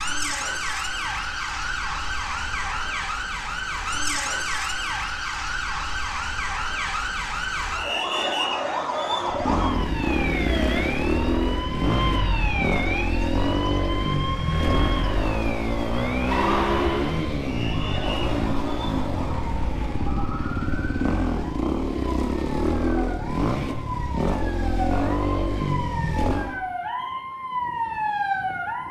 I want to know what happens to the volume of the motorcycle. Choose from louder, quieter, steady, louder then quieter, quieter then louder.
steady.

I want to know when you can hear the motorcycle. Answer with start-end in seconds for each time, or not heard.
9.2-26.6.